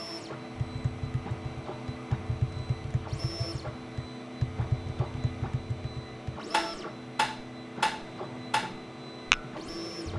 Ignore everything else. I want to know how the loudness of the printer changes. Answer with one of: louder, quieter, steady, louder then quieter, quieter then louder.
steady.